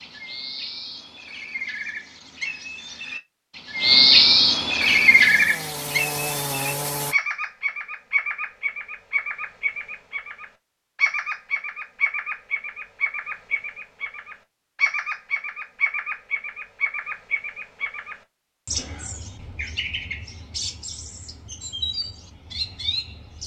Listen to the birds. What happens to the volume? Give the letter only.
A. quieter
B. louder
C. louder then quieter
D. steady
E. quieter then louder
A.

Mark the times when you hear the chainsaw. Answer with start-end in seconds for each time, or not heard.
5.0-7.2.